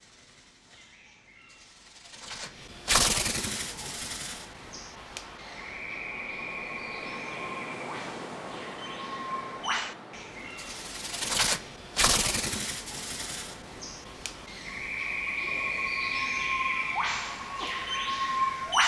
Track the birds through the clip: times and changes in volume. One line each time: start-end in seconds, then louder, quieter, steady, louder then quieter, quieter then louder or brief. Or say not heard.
0.0-18.8 quieter then louder.